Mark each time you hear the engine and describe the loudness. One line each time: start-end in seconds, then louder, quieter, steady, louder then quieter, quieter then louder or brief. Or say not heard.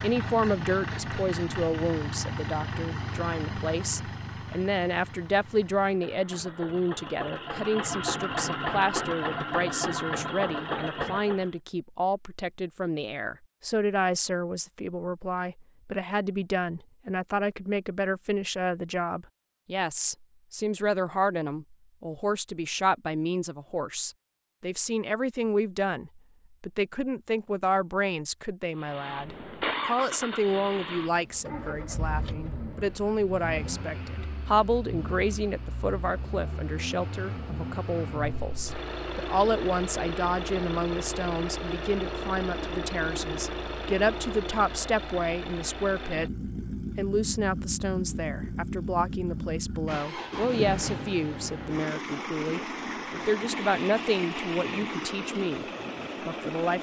0.0-11.5 quieter then louder
28.8-56.7 steady.